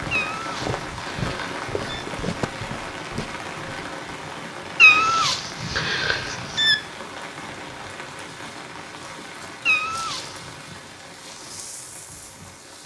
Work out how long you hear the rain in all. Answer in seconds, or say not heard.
13 s.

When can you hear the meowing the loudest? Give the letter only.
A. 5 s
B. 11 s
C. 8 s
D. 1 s
A.